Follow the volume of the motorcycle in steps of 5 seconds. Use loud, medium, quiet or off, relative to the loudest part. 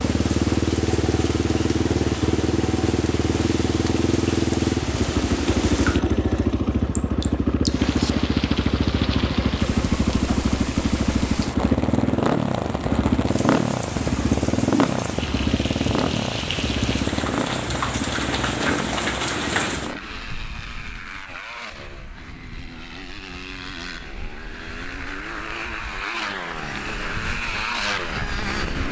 loud, loud, loud, medium, quiet, medium.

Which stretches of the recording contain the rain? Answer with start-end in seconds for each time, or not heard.
0.0-19.9.